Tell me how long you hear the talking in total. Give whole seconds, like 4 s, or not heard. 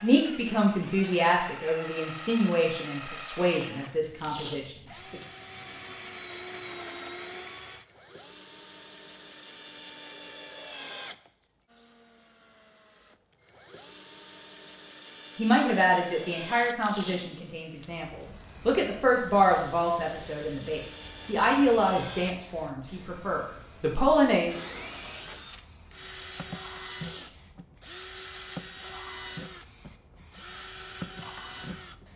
14 s.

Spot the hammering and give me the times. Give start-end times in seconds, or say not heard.
not heard.